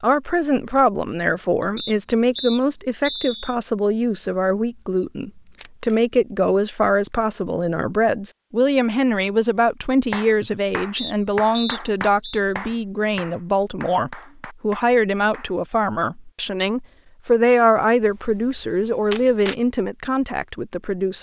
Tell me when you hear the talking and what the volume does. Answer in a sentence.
The talking can be heard from 0.0 to 21.1 s, at a steady volume.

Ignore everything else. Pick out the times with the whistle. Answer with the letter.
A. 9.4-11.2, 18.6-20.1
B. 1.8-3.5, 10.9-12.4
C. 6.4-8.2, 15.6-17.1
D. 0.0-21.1
B.